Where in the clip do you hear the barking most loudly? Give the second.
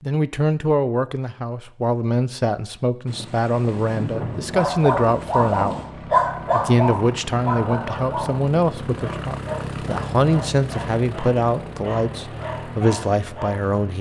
6 s.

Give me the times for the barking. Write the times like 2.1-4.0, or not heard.
4.5-13.8.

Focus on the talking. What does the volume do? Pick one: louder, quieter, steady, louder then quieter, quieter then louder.
steady.